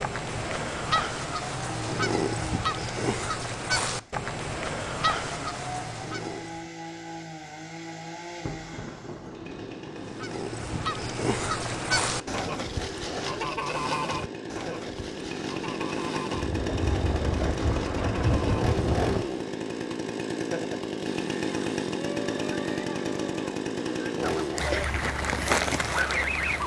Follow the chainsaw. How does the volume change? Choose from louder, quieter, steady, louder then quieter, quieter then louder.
louder.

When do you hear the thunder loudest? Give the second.
18 s.